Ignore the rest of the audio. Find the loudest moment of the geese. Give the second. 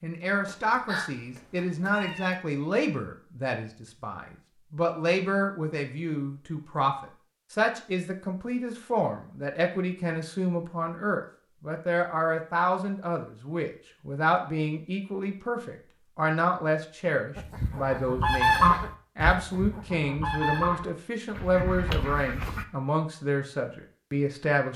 19 s.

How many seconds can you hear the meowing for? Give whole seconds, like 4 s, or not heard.
2 s.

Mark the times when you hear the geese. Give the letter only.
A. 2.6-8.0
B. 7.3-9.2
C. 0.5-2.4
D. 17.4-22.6
D.